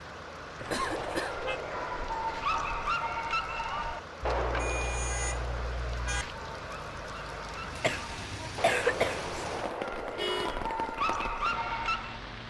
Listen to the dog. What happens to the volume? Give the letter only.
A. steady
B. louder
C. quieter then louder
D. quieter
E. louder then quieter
C.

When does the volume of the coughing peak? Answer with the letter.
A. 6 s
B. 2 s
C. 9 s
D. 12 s
C.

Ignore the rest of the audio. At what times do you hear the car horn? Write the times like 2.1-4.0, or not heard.
0.6-1.6, 4.2-6.2, 10.2-10.7.